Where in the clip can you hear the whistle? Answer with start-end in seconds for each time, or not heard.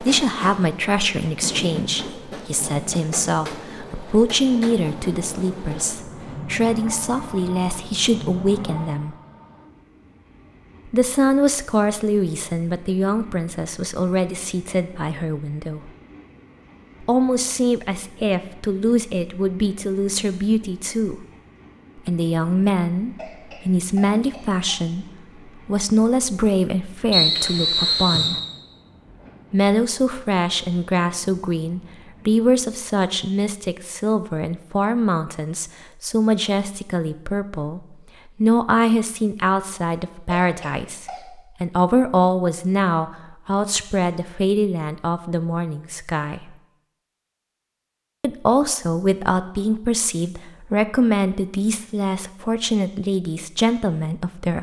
27.1-28.4.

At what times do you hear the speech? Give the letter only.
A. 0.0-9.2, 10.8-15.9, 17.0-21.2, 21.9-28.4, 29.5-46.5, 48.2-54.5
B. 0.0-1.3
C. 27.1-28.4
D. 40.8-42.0
A.